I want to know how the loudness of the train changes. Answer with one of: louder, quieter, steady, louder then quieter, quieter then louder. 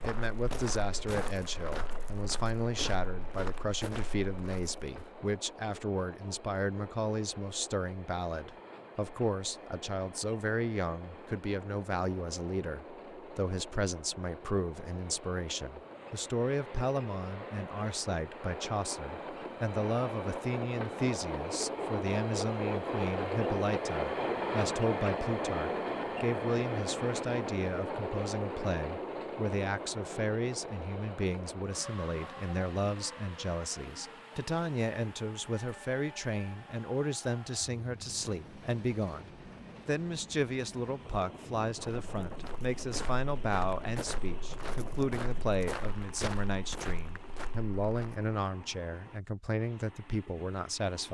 louder then quieter.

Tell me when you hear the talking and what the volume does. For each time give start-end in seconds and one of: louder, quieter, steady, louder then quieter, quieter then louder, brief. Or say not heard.
0.0-51.0 steady.